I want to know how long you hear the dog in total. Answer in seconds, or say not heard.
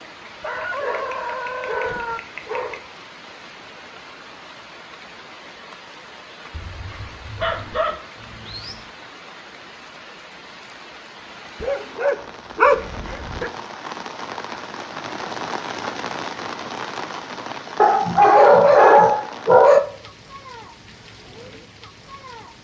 9 s.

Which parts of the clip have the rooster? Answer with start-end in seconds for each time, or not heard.
0.4-2.2.